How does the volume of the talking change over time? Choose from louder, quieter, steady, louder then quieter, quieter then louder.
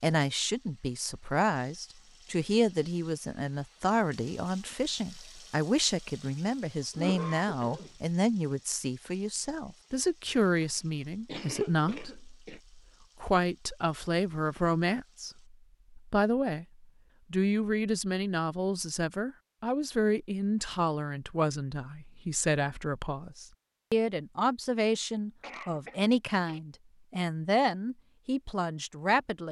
steady.